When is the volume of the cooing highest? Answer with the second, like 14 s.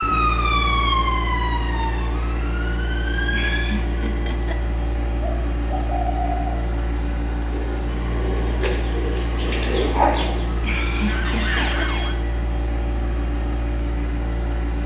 10 s.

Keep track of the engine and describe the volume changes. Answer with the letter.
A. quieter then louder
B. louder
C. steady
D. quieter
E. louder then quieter
C.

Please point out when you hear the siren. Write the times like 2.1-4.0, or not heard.
0.0-3.8, 10.4-12.2.